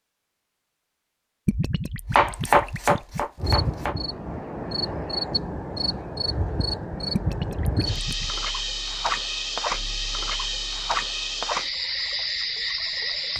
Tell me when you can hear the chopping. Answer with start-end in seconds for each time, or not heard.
2.1-4.0.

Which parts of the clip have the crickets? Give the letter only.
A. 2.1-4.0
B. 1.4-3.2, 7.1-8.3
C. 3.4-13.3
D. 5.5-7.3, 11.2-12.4
C.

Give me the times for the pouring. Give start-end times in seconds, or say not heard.
1.4-3.2, 7.1-8.3.